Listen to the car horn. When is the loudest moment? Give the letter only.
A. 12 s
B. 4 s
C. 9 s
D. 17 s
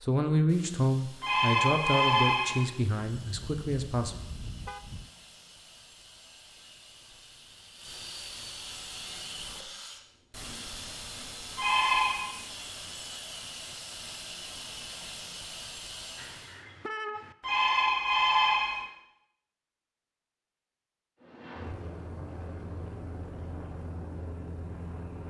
D.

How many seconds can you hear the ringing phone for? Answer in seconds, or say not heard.
4 s.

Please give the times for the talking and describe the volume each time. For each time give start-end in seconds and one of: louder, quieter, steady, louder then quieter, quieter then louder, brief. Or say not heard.
0.0-4.2 quieter.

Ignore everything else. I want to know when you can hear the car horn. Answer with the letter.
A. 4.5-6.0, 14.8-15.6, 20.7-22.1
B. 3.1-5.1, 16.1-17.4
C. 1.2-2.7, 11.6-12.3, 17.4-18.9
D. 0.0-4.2
B.